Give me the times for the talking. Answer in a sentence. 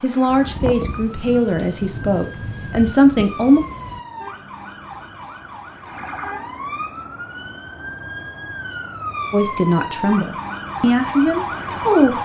The talking can be heard from 0.0 to 3.6 s and from 9.3 to 12.2 s.